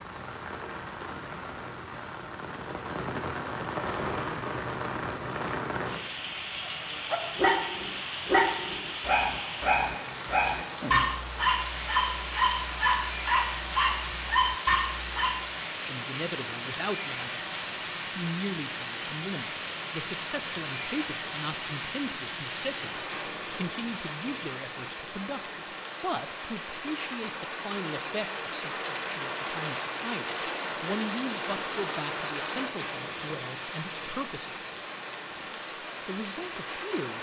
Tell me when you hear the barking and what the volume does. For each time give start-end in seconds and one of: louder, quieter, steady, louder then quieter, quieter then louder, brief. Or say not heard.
6.7-15.4 steady.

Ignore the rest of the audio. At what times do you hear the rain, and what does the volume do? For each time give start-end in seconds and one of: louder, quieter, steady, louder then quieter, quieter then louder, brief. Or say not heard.
0.0-37.1 steady.